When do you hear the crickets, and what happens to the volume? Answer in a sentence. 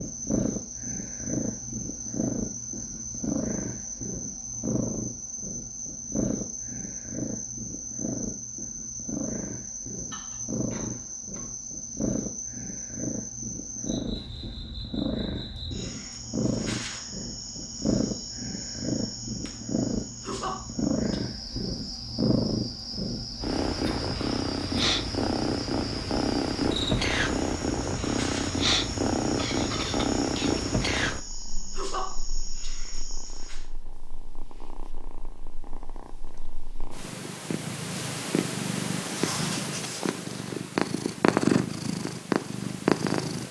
The crickets can be heard from 0.0 to 33.6 s, at a steady volume.